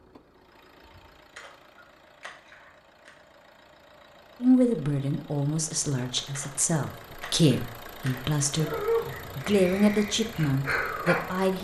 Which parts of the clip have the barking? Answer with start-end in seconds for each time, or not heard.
8.6-11.5.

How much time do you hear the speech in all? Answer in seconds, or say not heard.
7 s.